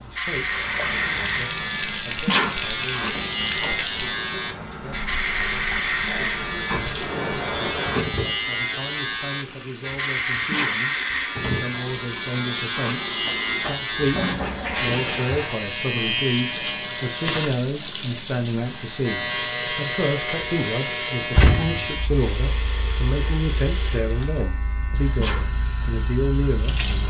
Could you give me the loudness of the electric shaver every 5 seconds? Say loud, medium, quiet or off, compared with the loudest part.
loud, loud, loud, loud, medium, quiet.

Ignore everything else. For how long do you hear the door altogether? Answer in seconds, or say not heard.
2 s.